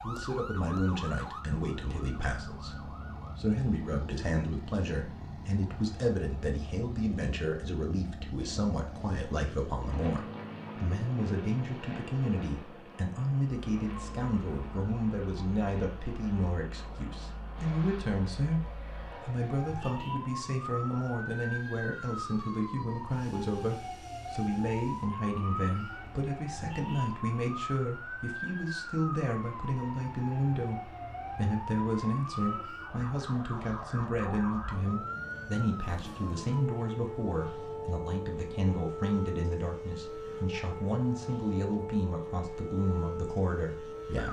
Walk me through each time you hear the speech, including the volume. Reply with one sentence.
The speech can be heard from 0.0 to 44.2 s, at a steady volume.